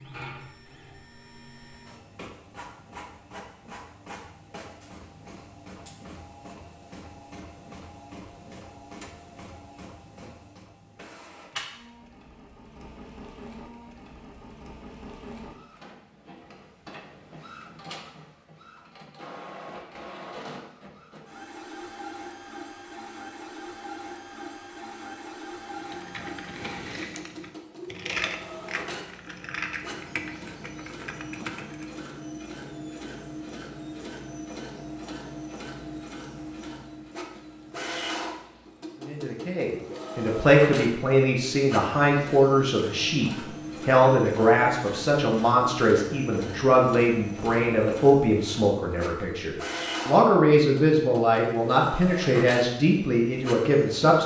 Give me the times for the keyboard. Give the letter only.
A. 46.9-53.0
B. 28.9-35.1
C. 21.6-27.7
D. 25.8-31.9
D.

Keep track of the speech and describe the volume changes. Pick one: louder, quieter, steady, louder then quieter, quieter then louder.
steady.